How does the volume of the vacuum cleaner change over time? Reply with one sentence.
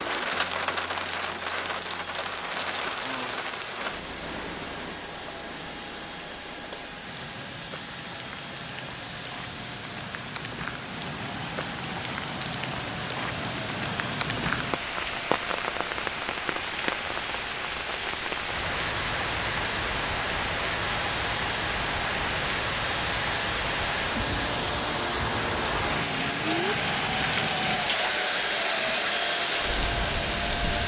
The loudness of the vacuum cleaner goes up.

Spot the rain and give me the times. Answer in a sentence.
You can hear the rain from 0.0 to 30.8 s.